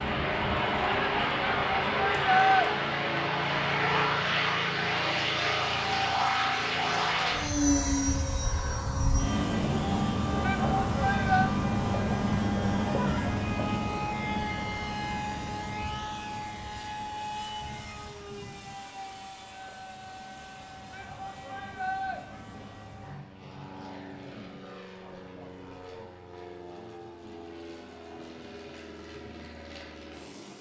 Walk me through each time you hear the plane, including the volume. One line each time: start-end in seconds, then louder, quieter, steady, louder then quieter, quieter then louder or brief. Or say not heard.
0.0-30.5 quieter.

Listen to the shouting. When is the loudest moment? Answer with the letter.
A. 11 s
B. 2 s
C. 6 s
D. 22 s
B.